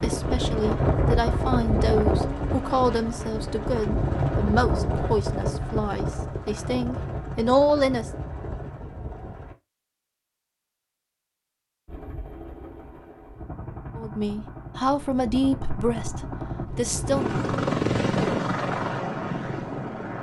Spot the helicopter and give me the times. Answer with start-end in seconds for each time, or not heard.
0.0-9.6, 11.8-20.1.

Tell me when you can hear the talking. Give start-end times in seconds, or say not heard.
0.0-8.1, 13.9-17.4.